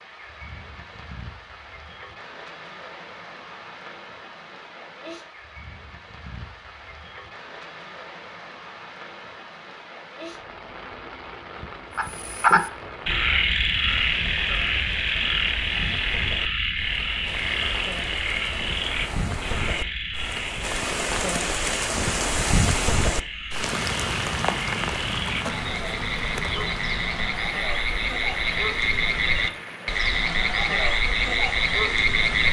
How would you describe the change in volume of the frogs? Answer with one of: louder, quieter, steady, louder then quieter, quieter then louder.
quieter then louder.